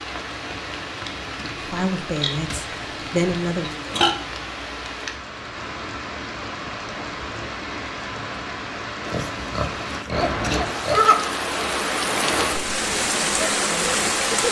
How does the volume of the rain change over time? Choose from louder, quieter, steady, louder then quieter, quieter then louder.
louder.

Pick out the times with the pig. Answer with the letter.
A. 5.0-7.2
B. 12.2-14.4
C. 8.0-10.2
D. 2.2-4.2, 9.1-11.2
D.